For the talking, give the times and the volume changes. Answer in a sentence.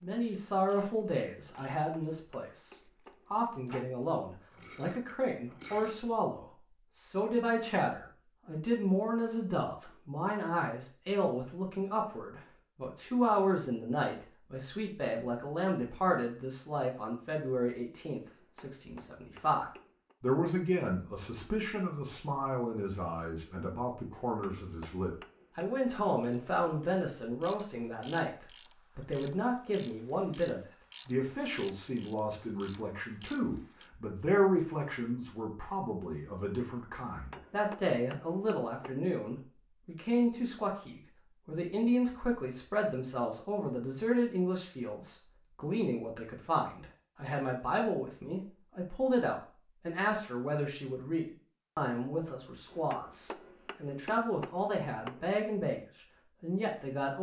You can hear the talking from 0.0 to 57.1 s, at a steady volume.